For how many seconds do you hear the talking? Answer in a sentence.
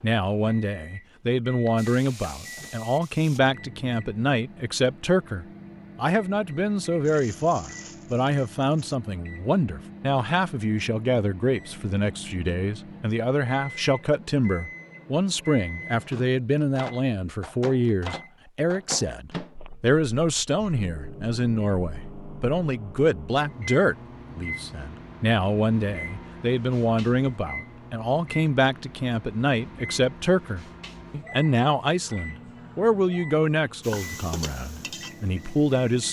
You can hear the talking for 36 seconds altogether.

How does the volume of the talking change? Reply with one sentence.
The loudness of the talking stays about the same.